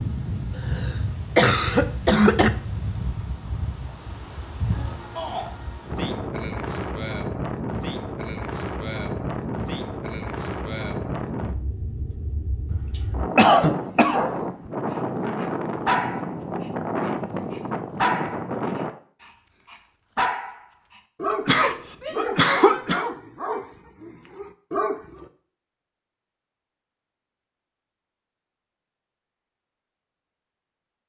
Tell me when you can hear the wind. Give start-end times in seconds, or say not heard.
0.0-18.9.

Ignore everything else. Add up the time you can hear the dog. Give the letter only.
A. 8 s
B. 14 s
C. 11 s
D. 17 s
C.